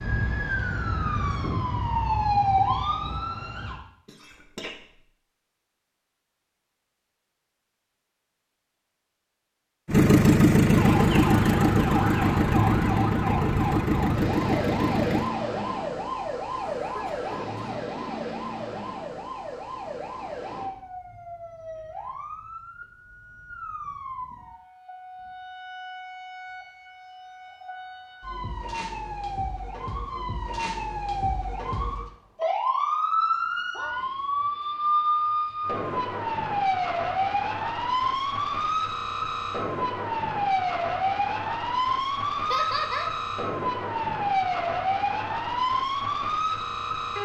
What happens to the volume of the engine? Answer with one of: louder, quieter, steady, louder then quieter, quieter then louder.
quieter.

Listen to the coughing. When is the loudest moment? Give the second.
43 s.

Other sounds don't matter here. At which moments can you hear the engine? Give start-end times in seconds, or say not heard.
9.8-15.3.